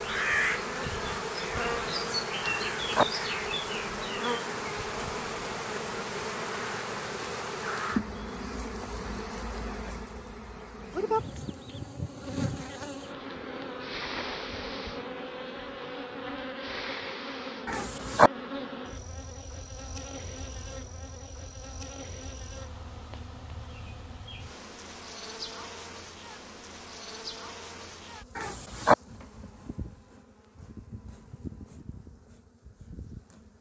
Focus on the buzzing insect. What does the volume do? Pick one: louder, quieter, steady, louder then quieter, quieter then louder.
quieter.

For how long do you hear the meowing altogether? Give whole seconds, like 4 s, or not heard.
2 s.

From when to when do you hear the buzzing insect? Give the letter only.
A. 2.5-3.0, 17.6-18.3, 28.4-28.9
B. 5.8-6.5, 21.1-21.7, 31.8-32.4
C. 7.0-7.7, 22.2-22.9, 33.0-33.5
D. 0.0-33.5
D.